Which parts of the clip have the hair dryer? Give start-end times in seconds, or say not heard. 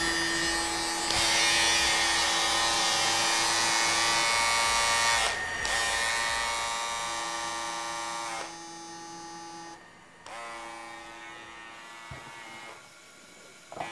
0.0-13.8.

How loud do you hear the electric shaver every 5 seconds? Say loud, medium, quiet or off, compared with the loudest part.
loud, medium, quiet.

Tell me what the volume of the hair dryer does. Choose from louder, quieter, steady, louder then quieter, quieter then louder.
quieter.